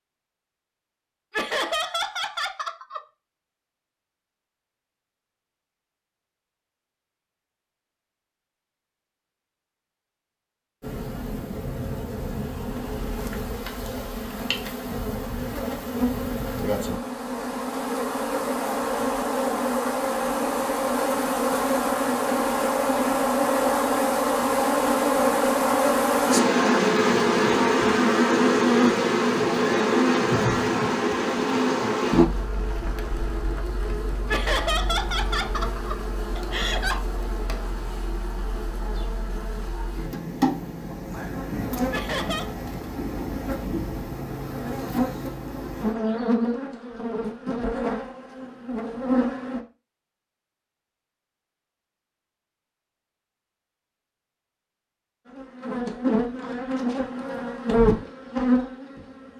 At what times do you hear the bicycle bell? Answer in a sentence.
The bicycle bell can't be heard in this clip.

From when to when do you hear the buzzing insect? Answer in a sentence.
You can hear the buzzing insect from 10.8 to 49.6 s and from 55.2 to 59.3 s.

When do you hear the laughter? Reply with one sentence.
You can hear the laughter from 1.3 to 3.0 s, from 34.2 to 37.0 s and from 41.9 to 42.5 s.